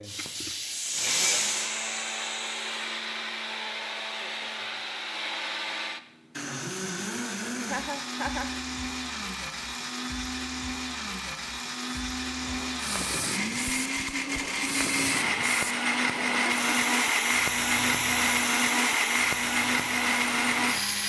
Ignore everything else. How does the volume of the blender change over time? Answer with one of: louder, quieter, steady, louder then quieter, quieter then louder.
louder.